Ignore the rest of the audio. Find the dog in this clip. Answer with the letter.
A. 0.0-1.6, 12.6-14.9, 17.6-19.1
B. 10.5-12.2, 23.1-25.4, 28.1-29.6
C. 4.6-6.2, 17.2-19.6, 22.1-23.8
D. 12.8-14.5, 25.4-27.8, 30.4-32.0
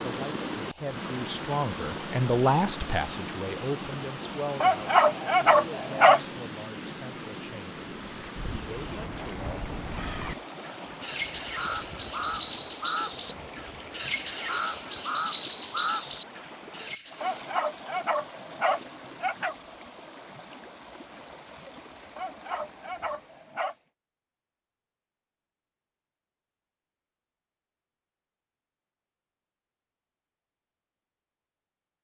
C.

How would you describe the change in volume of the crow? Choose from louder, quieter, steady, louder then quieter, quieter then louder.
louder.